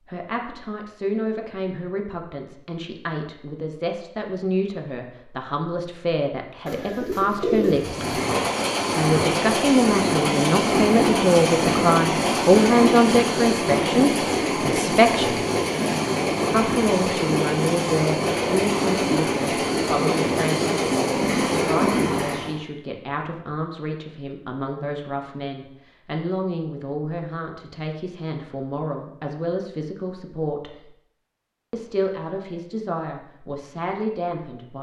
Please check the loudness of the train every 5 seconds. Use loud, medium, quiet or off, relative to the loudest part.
off, loud, loud, loud, loud, off, off.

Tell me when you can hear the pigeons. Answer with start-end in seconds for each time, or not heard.
6.7-8.3.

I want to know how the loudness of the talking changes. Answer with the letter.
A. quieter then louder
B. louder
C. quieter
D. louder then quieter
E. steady
D.